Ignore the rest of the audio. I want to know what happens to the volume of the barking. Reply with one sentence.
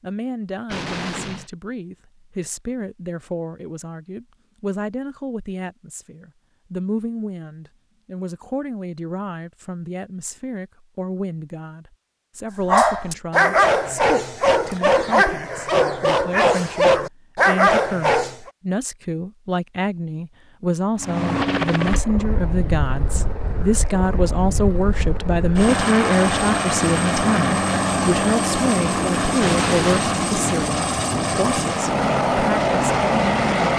The volume of the barking stays about the same.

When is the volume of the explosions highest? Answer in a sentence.
The volume of the explosions peaks at 30 seconds.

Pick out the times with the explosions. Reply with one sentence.
You can hear the explosions from 0.7 to 1.5 s and from 29.4 to 30.2 s.